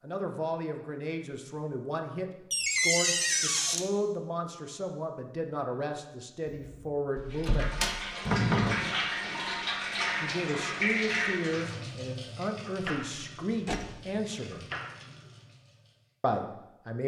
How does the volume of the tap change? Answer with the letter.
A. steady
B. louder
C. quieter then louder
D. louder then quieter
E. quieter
E.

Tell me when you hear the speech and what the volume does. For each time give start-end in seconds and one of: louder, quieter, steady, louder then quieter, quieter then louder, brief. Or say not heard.
0.0-7.7 steady
10.2-14.7 steady
16.2-17.0 brief.